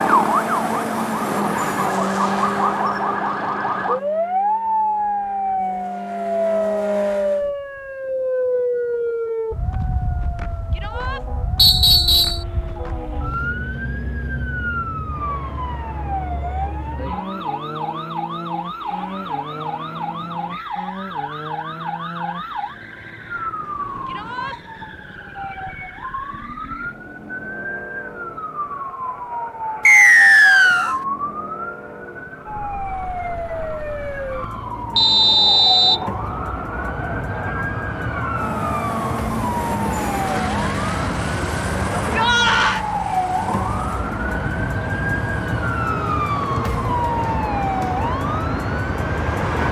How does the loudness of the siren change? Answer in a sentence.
The volume of the siren goes down, then up.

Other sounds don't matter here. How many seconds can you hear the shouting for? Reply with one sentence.
The shouting can be heard for 2 seconds in total.